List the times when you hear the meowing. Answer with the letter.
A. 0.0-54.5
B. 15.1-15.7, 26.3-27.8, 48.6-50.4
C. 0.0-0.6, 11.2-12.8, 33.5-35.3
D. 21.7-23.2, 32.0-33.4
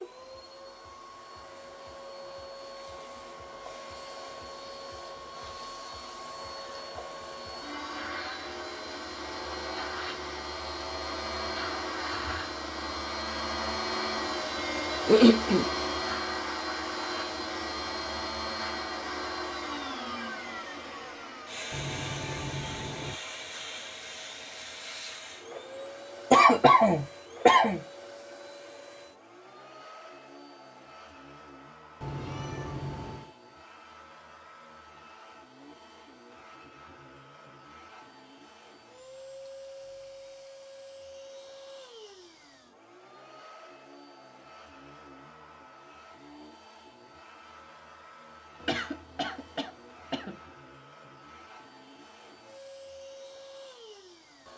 D.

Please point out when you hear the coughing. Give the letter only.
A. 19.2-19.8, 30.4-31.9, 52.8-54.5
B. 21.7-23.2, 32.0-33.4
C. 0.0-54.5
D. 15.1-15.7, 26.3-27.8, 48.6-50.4
D.